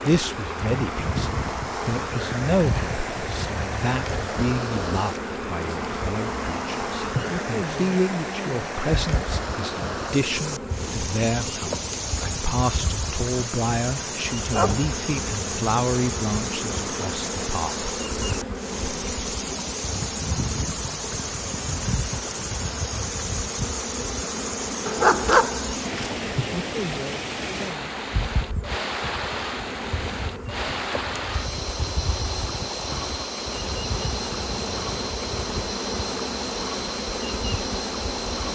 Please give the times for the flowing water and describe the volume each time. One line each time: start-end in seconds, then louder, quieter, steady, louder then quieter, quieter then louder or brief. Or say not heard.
0.0-38.5 steady.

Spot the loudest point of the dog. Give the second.
25 s.